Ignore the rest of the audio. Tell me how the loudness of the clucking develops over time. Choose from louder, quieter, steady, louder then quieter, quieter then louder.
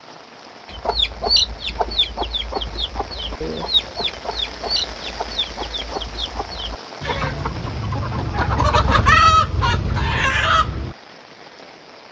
quieter then louder.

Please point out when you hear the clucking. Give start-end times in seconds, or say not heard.
0.7-10.9.